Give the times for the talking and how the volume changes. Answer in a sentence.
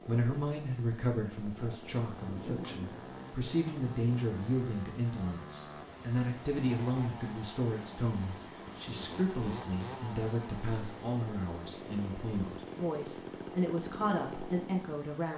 You can hear the talking from 0.1 to 15.3 s, at a steady volume.